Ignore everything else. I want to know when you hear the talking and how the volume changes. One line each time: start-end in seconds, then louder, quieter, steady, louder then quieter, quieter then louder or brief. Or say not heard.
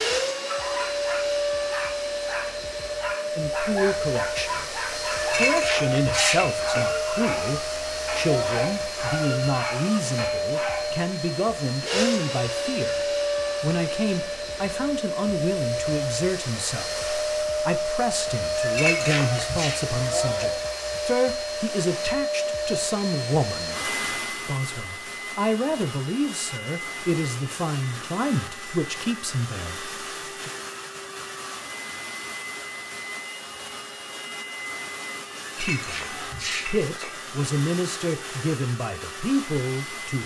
3.2-30.5 steady
35.6-40.2 louder.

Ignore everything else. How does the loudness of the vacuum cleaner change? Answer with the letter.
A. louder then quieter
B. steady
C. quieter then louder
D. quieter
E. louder
D.